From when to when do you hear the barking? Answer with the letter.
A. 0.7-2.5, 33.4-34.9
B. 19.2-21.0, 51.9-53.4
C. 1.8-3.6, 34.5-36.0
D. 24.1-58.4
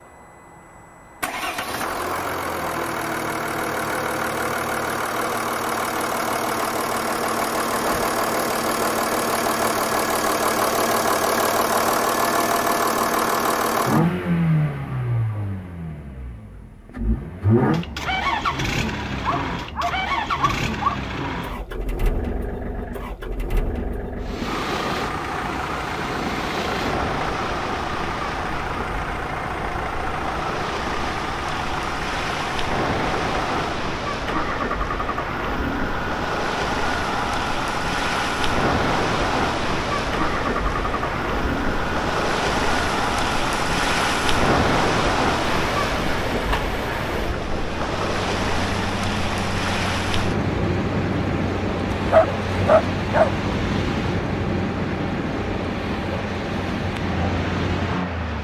B.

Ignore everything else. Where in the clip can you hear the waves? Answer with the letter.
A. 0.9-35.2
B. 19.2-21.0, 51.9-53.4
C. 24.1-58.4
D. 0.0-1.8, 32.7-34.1
C.